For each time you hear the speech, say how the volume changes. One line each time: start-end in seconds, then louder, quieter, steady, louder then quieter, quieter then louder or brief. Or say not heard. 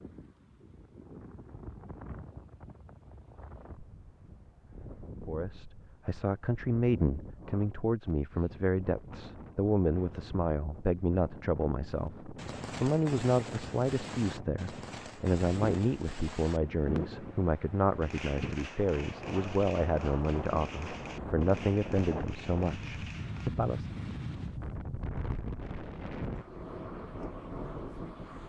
5.2-24.0 steady.